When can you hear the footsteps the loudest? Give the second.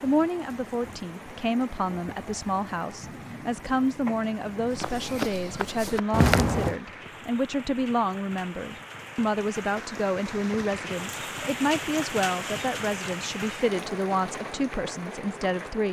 6 s.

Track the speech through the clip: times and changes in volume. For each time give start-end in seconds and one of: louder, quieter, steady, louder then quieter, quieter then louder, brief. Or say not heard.
0.0-15.8 steady.